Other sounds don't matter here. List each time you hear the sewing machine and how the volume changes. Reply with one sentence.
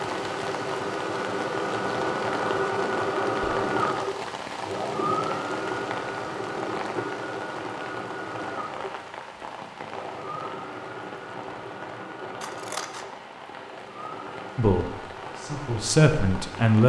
You can hear the sewing machine from 0.0 to 16.6 s, getting quieter.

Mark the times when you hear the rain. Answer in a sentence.
The rain can be heard from 0.0 to 16.8 s.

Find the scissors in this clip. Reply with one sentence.
You can hear the scissors from 12.4 to 13.1 s.